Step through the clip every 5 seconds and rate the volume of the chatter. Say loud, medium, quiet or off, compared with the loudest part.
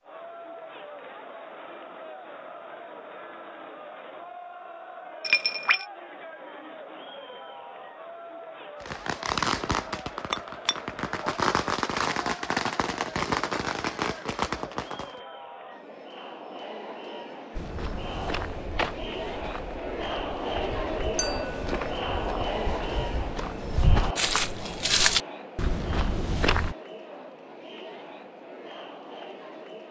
medium, medium, medium, medium, loud, medium.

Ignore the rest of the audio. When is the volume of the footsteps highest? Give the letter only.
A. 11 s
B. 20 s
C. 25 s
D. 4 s
C.